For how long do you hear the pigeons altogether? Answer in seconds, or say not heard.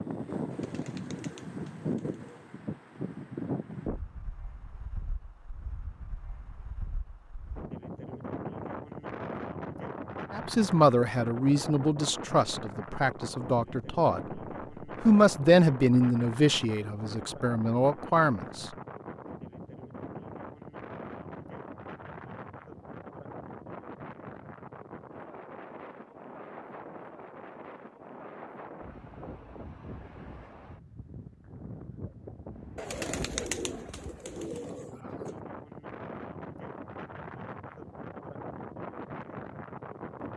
5 s.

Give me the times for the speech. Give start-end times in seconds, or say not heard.
10.3-14.4, 15.0-18.7.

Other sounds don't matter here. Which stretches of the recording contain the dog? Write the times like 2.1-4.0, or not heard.
not heard.